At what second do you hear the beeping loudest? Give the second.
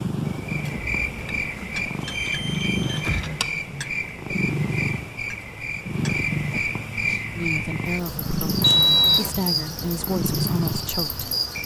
9 s.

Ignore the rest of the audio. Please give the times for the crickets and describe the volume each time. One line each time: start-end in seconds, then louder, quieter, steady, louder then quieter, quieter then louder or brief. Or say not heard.
0.0-11.6 steady.